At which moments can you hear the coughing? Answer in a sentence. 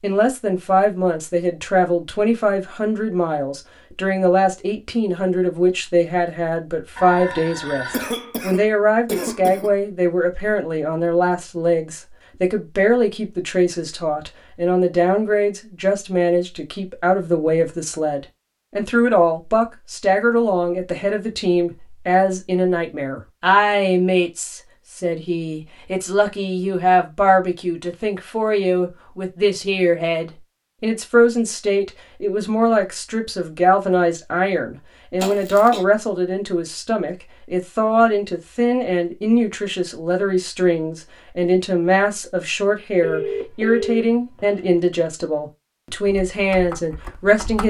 You can hear the coughing from 7.9 to 9.8 s and from 35.2 to 35.9 s.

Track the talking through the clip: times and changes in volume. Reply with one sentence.
The talking can be heard from 0.0 to 47.6 s, at a steady volume.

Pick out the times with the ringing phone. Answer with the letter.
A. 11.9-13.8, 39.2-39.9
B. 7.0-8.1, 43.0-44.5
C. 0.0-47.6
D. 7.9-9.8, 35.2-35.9
B.